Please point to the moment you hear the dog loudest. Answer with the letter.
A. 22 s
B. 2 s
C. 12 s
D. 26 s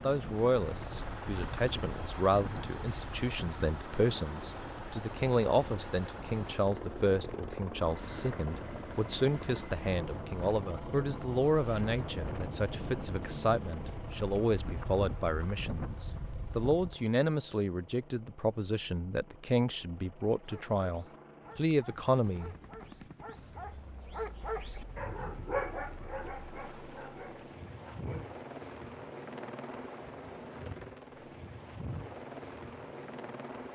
D.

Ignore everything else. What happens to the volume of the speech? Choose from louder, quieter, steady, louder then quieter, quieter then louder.
steady.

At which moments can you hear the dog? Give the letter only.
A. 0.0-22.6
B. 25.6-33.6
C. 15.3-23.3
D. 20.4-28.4
D.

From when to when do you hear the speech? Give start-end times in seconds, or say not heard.
0.0-22.6.